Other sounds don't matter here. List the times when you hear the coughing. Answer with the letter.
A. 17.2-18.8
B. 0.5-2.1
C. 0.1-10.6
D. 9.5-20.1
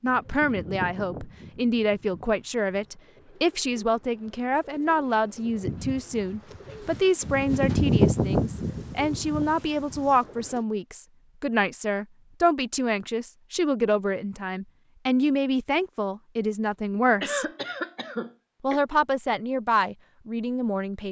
A.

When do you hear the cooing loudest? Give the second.
8 s.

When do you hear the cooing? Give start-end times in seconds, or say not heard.
0.1-10.6.